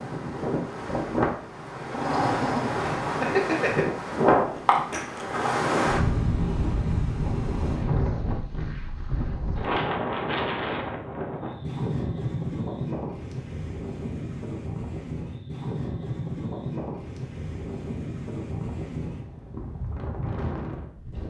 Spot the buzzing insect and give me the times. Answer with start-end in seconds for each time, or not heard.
not heard.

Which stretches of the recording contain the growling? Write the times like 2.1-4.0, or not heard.
1.9-3.9.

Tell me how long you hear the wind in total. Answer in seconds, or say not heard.
21 s.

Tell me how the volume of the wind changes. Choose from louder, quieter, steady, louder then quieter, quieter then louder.
quieter.